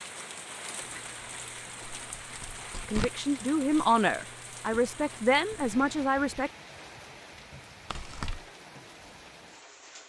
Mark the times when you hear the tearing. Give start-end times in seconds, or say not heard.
2.2-3.1, 7.9-8.4.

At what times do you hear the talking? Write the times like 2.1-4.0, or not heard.
2.9-6.5.